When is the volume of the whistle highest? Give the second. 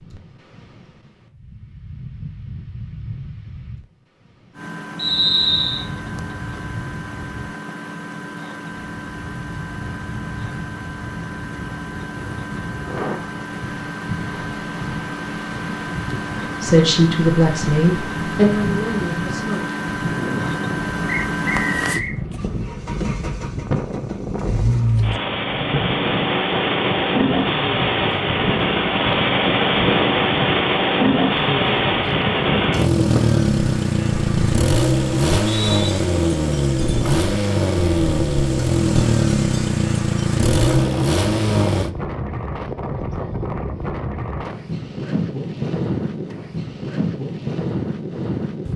5 s.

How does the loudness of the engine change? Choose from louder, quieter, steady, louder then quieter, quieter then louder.
louder.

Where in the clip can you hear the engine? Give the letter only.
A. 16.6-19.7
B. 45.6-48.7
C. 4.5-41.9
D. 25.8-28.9
C.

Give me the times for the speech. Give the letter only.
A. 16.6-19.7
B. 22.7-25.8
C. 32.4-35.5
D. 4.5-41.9
A.